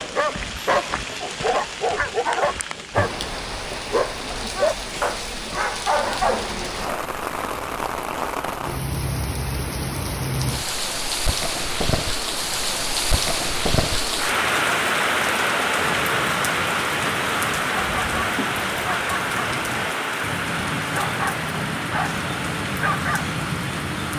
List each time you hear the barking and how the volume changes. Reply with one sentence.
The barking can be heard from 0.0 to 7.0 s, at a steady volume; and from 15.8 to 24.1 s, getting louder.